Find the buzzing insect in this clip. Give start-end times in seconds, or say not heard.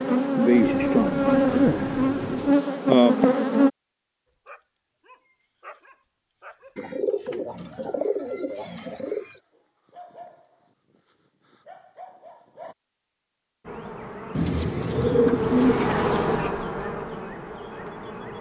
0.0-3.7, 13.6-18.3.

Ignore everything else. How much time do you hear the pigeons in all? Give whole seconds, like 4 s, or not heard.
7 s.